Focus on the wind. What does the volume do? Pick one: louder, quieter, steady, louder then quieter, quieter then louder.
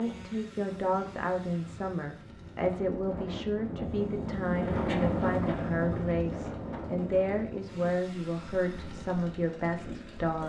louder then quieter.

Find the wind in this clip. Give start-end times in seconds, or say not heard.
0.0-10.3.